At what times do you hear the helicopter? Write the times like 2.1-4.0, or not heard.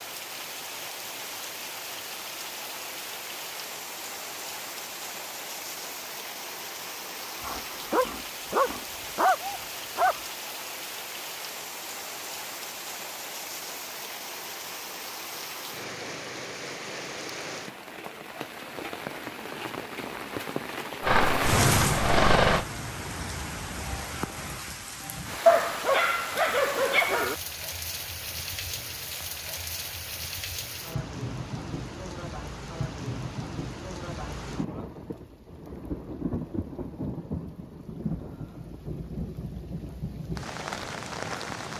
21.0-22.6.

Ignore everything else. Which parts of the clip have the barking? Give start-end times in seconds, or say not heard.
7.4-10.2, 25.4-27.4.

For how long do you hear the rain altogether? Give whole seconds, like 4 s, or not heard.
42 s.